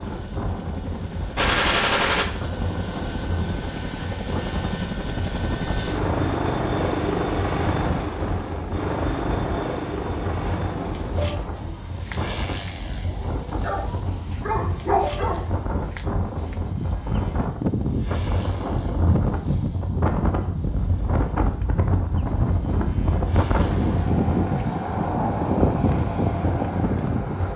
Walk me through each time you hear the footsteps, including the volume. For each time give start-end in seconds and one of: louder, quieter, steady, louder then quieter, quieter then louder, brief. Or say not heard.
not heard.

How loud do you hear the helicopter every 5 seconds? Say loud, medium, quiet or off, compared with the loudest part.
medium, loud, medium, quiet, quiet, quiet.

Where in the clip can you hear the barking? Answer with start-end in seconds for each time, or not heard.
13.6-15.4.